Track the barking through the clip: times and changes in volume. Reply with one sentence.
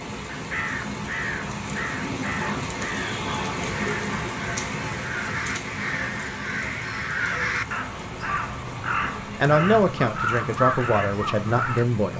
The barking can't be heard in this clip.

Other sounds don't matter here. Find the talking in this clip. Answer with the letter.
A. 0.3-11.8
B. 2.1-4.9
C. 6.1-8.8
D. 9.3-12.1
D.